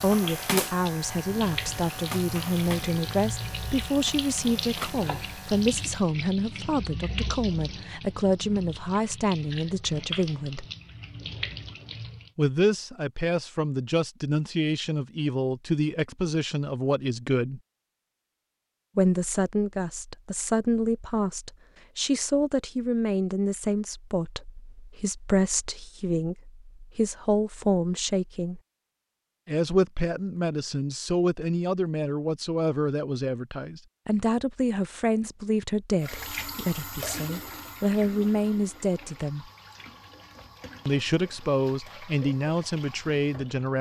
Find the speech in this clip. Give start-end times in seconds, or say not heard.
0.0-10.7, 12.3-17.6, 18.9-28.6, 29.4-39.5, 40.9-43.7.